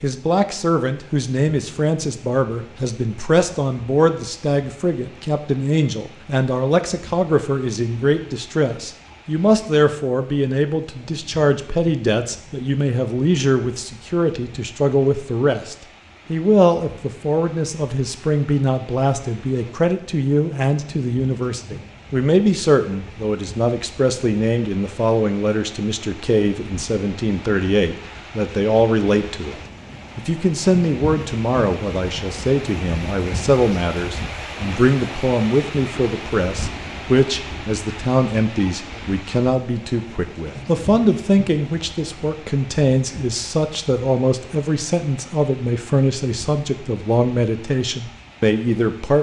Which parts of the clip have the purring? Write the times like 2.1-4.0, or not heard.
not heard.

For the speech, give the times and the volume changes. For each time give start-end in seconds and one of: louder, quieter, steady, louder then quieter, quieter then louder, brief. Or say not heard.
0.0-49.1 steady.